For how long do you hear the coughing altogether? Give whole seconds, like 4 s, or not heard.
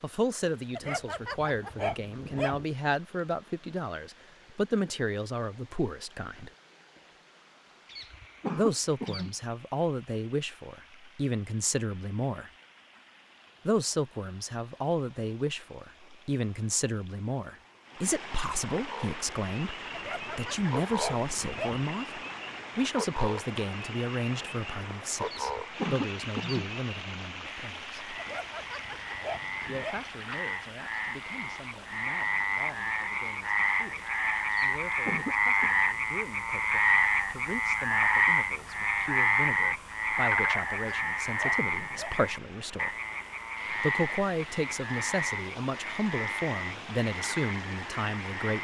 4 s.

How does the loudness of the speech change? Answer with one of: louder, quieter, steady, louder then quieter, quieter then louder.
quieter then louder.